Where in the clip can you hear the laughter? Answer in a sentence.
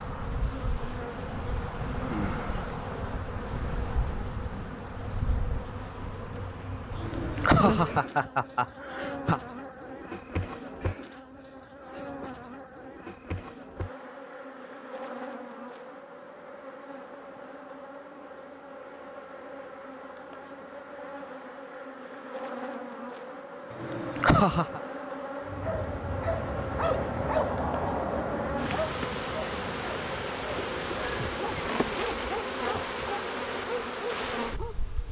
You can hear the laughter from 6.9 to 9.4 s and from 23.7 to 24.8 s.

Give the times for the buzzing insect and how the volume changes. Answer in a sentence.
The buzzing insect can be heard from 0.0 to 35.0 s, getting quieter then louder.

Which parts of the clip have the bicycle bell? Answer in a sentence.
The bicycle bell can be heard from 30.6 to 31.8 s.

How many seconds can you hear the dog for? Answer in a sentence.
You can hear the dog for 9 seconds altogether.